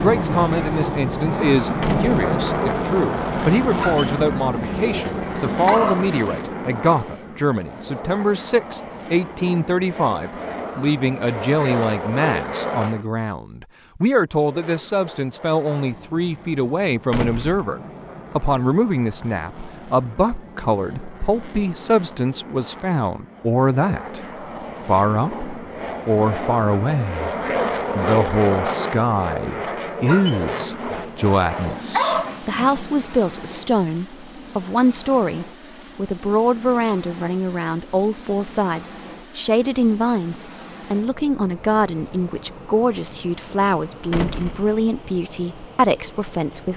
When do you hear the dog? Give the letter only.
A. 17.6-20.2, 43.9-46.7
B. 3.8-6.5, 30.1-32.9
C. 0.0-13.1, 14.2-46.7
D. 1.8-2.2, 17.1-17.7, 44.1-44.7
B.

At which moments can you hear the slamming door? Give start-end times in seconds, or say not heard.
1.8-2.2, 17.1-17.7, 44.1-44.7.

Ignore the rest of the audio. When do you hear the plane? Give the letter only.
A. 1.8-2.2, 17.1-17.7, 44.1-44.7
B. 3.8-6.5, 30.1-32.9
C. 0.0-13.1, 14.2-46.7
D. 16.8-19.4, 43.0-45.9
C.